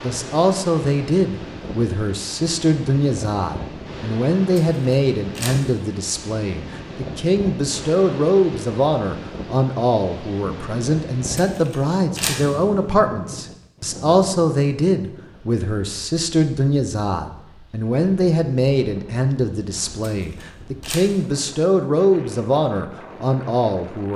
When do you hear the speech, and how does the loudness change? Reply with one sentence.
The speech can be heard from 0.0 to 24.1 s, at a steady volume.